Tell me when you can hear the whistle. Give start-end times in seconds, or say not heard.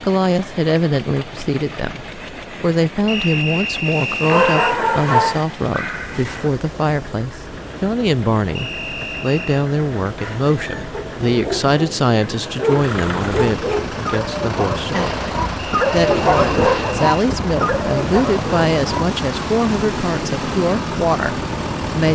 3.0-4.8, 8.6-9.7, 15.6-17.1.